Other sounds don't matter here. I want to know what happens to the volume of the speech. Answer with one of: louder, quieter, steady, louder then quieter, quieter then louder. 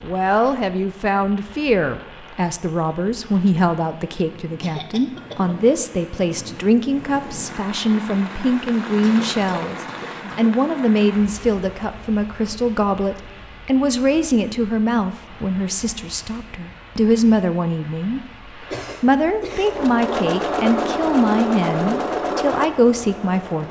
steady.